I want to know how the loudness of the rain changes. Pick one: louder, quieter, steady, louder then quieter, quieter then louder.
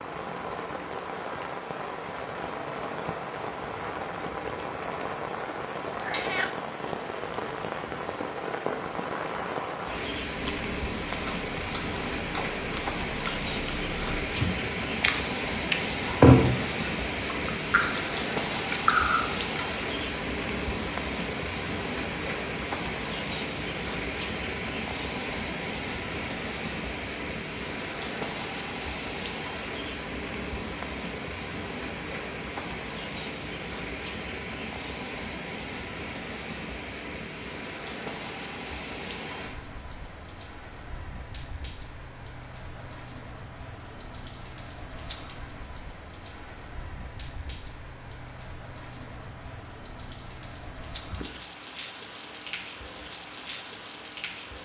quieter.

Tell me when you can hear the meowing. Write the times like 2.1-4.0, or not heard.
6.0-6.5.